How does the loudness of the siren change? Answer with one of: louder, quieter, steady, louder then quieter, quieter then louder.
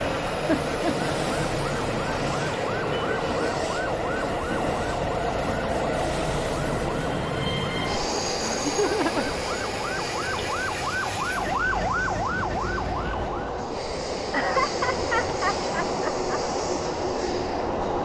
louder.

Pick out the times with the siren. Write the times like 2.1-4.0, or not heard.
0.0-13.7.